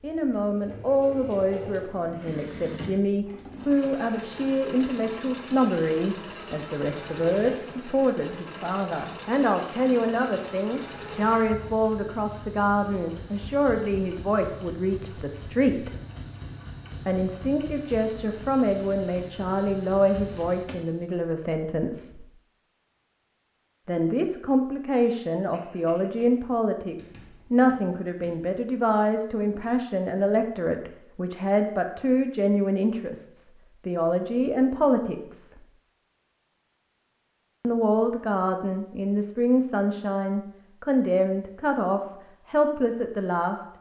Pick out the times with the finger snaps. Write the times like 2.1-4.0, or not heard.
not heard.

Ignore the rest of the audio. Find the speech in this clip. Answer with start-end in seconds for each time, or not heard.
0.0-15.9, 17.1-22.2, 23.9-35.6, 37.6-43.6.